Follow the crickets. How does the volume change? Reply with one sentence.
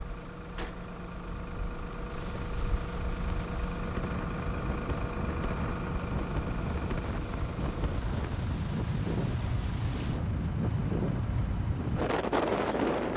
The volume of the crickets goes up.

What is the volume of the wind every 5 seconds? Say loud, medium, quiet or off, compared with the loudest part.
quiet, medium, loud.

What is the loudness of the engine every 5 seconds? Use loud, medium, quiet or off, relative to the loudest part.
loud, loud, medium.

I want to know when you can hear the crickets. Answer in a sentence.
You can hear the crickets from 2.1 to 13.1 s.